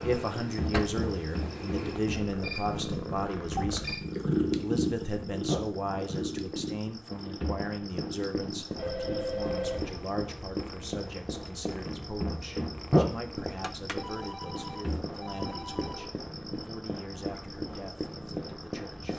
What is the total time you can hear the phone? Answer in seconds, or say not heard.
5 s.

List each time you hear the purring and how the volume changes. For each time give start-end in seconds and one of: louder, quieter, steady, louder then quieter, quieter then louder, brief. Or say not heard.
0.0-19.1 louder then quieter.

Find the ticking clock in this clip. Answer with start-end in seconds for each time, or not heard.
not heard.